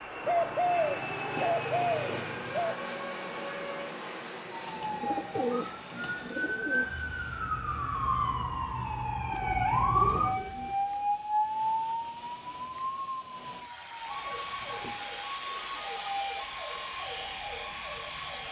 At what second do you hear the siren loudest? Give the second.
10 s.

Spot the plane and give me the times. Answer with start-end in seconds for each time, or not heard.
0.0-18.4.